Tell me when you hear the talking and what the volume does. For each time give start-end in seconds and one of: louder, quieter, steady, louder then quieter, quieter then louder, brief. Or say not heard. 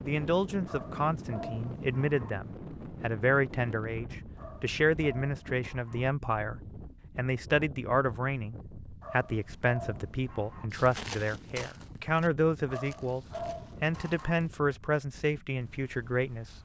0.1-16.4 steady.